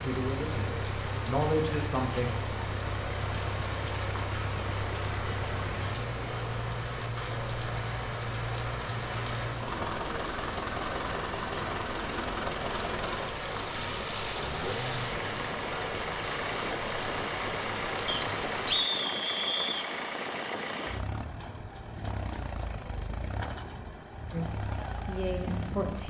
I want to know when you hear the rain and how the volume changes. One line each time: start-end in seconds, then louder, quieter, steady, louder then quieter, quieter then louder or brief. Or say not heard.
0.0-18.8 steady.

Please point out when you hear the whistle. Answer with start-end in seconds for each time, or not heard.
18.1-19.9.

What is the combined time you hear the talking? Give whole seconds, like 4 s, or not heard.
4 s.